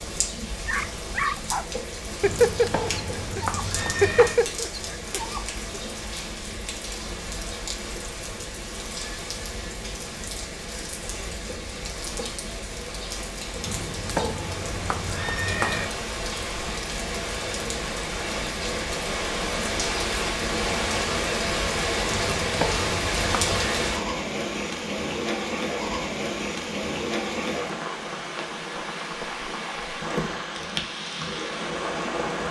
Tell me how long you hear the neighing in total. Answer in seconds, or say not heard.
6 s.